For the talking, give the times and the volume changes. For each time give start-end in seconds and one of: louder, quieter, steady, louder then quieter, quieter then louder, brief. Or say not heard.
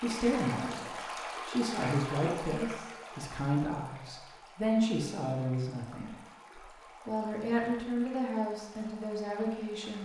0.0-10.0 steady.